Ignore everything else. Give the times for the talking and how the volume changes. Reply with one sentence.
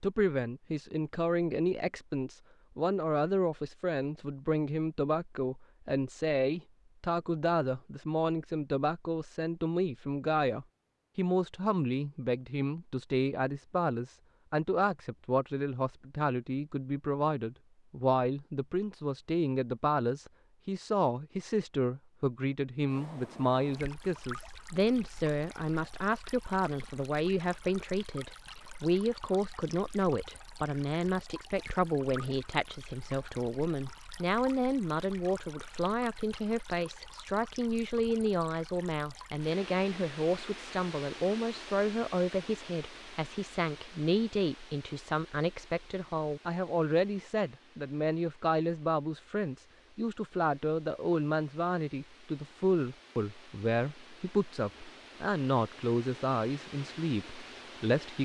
The talking can be heard from 0.0 to 58.2 s, at a steady volume.